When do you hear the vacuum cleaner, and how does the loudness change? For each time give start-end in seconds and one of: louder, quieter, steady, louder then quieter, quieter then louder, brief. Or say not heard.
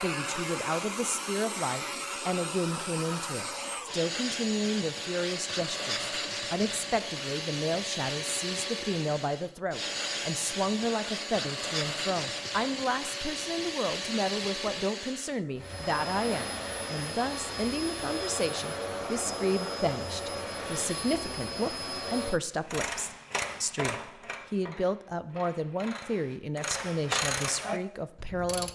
0.0-22.4 steady.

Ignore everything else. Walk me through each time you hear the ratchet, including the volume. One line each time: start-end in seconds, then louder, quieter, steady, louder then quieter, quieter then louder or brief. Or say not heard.
22.6-28.7 quieter then louder.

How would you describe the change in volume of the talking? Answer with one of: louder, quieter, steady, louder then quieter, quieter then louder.
steady.